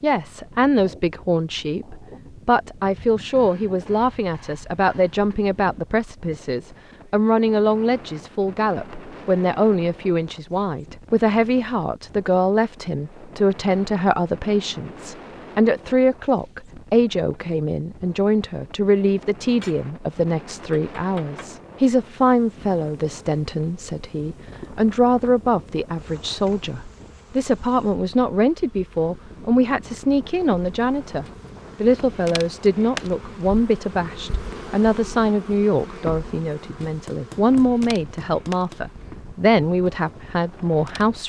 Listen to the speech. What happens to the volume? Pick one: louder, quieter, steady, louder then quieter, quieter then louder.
steady.